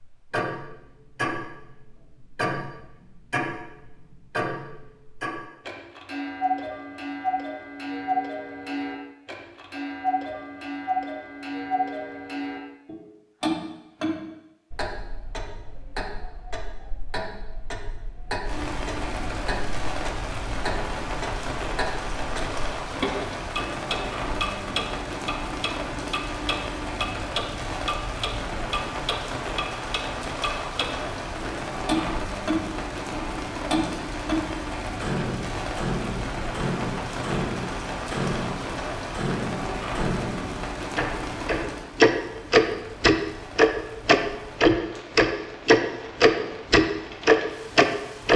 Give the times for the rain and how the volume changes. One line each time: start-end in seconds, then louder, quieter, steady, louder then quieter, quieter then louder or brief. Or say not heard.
18.4-48.3 quieter.